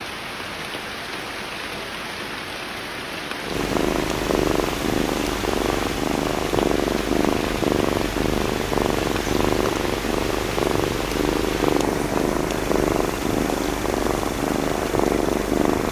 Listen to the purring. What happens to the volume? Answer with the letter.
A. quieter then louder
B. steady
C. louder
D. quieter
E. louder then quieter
C.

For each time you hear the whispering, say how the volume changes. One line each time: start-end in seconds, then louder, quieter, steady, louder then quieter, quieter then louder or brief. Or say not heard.
not heard.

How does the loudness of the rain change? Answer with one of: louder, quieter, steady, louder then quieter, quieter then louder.
steady.